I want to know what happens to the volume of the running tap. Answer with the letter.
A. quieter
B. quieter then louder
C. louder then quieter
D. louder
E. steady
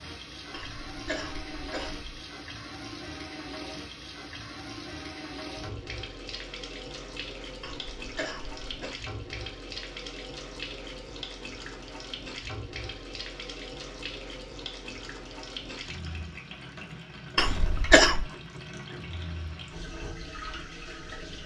E.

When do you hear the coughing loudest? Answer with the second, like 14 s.
18 s.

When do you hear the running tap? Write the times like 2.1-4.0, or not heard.
0.0-21.4.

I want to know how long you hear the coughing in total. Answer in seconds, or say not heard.
4 s.